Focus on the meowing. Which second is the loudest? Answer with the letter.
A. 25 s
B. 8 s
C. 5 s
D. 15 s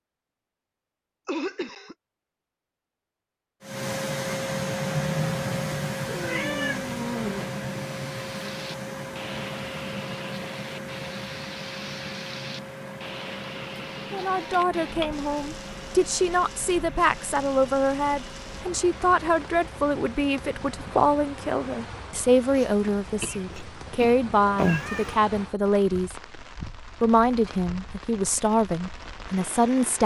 A.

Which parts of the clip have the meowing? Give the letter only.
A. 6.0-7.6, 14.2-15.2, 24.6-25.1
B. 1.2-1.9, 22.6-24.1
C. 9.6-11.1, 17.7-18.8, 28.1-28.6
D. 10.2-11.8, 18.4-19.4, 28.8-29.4
A.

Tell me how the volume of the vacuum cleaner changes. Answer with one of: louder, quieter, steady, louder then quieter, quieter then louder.
quieter.